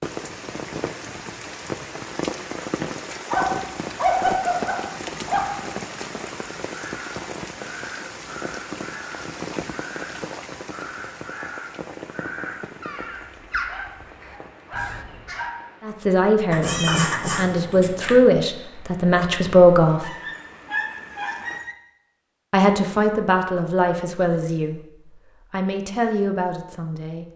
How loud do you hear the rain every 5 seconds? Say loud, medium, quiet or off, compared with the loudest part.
loud, loud, medium, quiet, quiet, off.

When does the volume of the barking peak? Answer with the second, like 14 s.
4 s.